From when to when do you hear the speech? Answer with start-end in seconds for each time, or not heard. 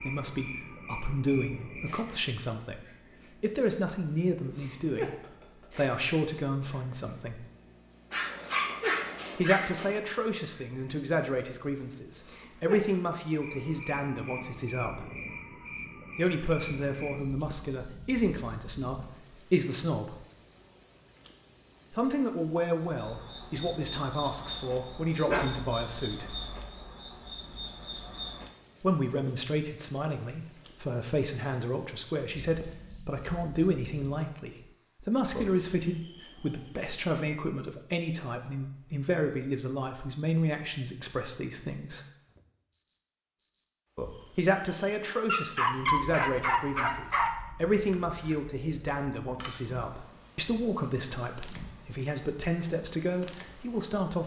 0.0-7.5, 9.3-15.1, 16.1-20.2, 21.9-26.4, 28.8-42.0, 44.4-54.2.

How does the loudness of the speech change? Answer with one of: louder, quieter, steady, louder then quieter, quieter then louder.
steady.